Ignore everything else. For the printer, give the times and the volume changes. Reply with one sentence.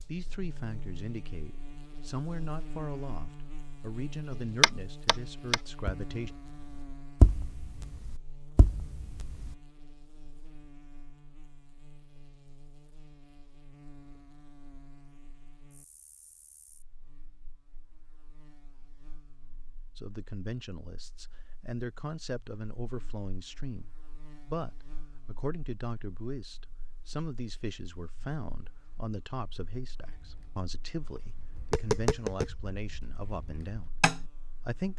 The printer can't be heard in this clip.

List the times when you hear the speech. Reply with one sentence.
You can hear the speech from 0.1 to 6.3 s and from 19.9 to 34.9 s.